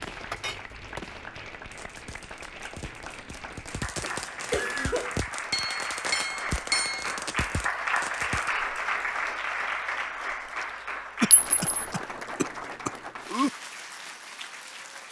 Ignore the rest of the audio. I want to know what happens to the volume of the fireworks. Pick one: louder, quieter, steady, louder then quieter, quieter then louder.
quieter then louder.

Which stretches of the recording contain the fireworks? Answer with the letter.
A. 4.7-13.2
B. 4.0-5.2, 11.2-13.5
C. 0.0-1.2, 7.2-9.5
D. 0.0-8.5
D.